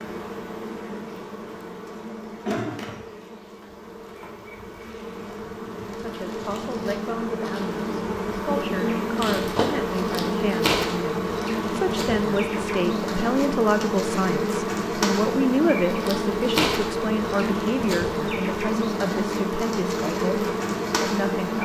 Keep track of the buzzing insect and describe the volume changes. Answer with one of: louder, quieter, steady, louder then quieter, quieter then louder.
louder.